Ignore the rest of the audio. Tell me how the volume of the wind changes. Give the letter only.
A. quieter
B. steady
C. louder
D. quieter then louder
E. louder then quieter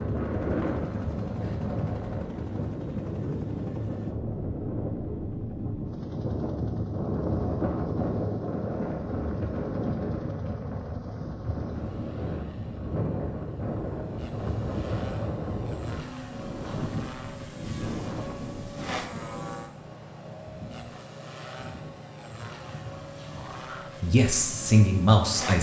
A.